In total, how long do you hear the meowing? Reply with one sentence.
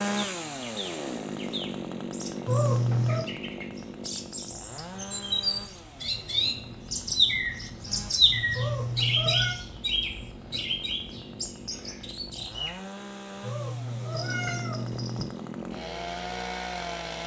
You can hear the meowing for 4 seconds altogether.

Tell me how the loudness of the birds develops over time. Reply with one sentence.
The loudness of the birds goes up, then down.